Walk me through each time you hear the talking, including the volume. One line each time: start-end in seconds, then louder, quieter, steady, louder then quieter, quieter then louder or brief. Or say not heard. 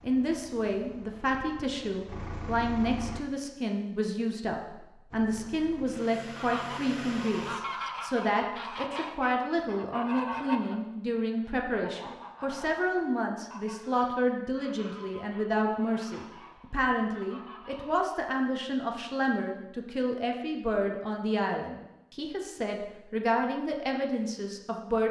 0.0-25.0 steady.